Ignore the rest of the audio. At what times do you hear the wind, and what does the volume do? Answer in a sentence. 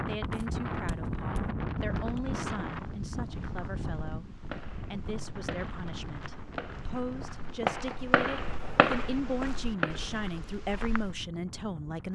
The wind can be heard from 0.0 to 12.1 s, getting quieter.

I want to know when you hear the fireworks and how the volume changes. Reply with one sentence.
You can hear the fireworks from 4.5 to 10.2 s, getting louder.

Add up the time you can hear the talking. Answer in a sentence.
You can hear the talking for 12 seconds altogether.